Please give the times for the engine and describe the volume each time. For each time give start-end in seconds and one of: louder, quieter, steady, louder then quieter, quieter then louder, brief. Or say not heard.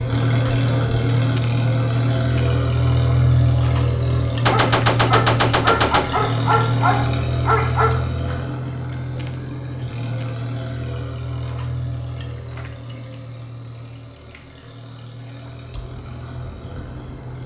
0.0-17.4 quieter.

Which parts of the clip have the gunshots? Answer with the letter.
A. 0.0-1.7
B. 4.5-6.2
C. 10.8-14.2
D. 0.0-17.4
B.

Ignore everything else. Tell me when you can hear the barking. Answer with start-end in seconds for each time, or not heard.
4.5-8.0.